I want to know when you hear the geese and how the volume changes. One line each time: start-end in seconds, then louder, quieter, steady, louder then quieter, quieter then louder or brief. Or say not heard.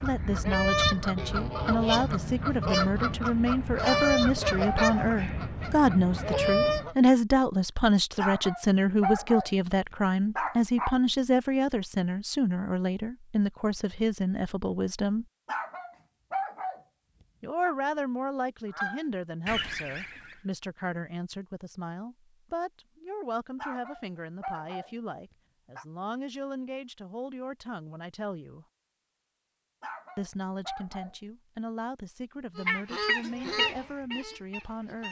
0.0-7.0 steady
18.6-20.4 brief
32.5-35.0 brief.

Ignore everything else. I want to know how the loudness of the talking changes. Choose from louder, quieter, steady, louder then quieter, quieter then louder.
quieter.